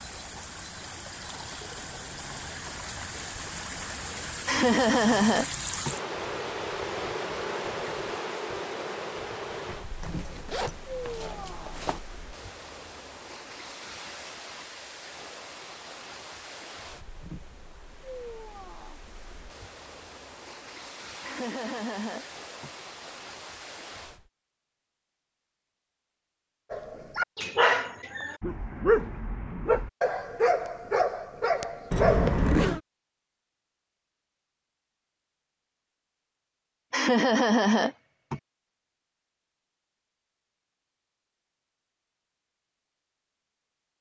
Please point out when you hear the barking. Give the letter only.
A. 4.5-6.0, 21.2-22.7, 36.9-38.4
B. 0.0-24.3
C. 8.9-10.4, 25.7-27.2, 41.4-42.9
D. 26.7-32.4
D.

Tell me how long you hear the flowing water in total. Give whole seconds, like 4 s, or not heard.
24 s.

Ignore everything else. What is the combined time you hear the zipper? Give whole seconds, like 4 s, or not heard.
3 s.